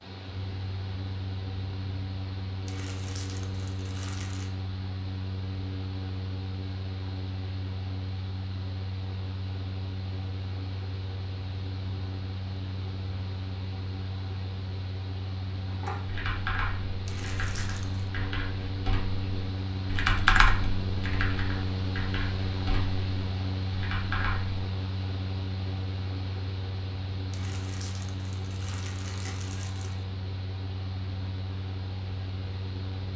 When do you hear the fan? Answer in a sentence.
The fan can be heard from 0.0 to 33.1 s.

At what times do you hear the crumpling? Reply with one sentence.
You can hear the crumpling from 2.6 to 4.5 s, from 17.1 to 18.1 s and from 27.3 to 30.1 s.